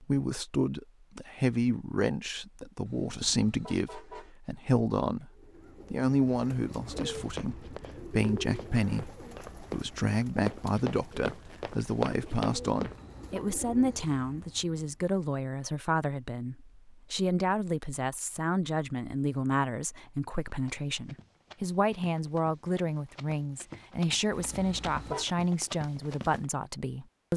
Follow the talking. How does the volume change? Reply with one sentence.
The loudness of the talking stays about the same.